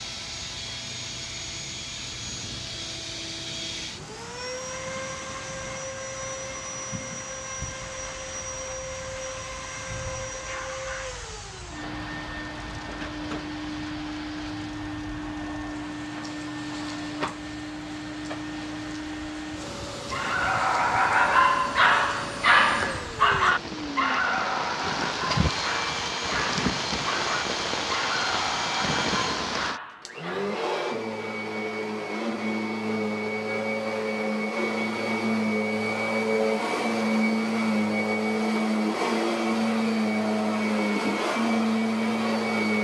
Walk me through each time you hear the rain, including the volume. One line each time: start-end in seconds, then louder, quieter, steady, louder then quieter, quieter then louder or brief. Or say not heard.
0.0-29.8 louder.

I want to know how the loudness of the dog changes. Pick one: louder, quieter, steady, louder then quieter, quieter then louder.
quieter.